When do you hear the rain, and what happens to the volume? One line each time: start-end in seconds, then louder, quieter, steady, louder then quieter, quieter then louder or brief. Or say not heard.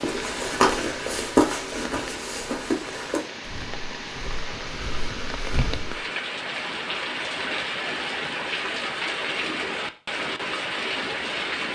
0.0-11.7 louder.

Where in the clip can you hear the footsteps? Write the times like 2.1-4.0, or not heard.
0.0-6.0.